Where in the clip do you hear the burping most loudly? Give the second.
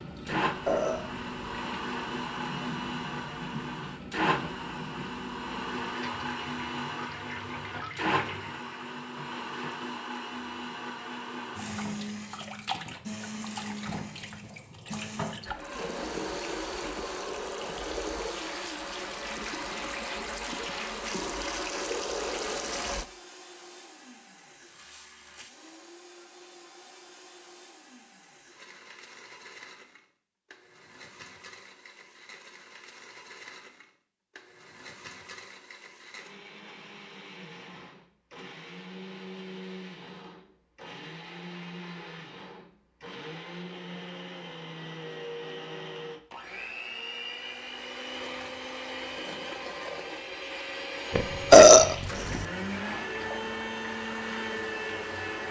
52 s.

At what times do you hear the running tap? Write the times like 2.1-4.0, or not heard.
0.0-23.1, 51.8-55.4.